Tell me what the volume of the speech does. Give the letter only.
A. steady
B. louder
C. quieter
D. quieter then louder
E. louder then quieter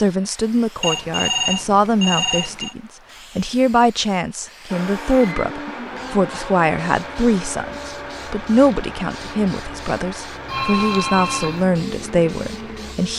A.